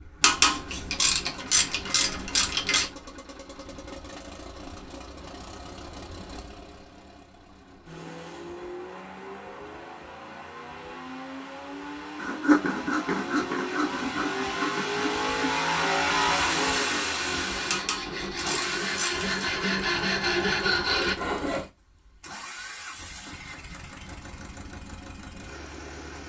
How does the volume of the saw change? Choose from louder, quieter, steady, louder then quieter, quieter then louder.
quieter then louder.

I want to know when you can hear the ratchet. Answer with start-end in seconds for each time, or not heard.
0.2-2.9, 17.7-19.3.